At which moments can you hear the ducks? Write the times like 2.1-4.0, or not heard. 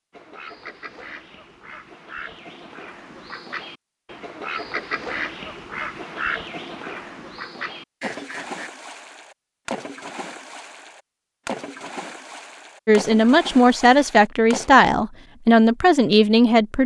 0.1-8.7.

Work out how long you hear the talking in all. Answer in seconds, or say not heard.
4 s.